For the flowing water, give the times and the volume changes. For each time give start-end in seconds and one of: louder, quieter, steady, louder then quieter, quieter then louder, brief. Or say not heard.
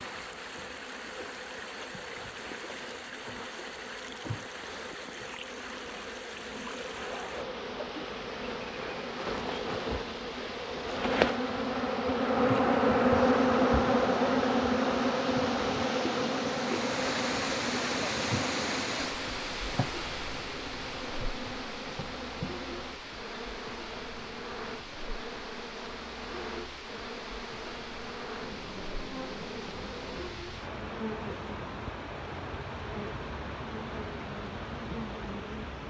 0.0-35.8 louder then quieter.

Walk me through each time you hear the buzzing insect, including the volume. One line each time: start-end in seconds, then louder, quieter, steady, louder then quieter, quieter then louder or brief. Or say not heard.
0.0-35.8 louder then quieter.